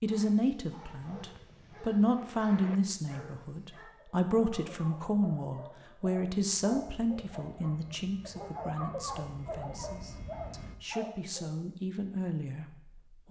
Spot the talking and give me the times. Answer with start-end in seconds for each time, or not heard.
0.0-13.2.